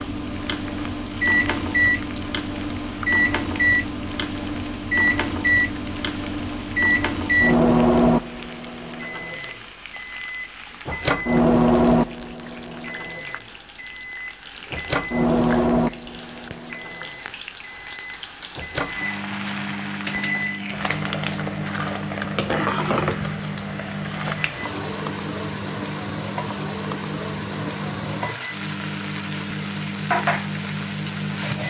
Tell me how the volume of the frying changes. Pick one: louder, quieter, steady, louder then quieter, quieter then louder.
louder.